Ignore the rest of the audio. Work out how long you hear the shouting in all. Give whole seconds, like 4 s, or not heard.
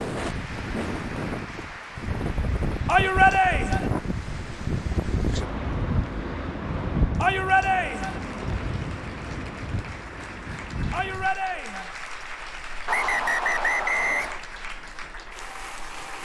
3 s.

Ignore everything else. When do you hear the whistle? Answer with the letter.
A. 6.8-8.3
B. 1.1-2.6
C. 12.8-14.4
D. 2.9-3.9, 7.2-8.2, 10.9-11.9
C.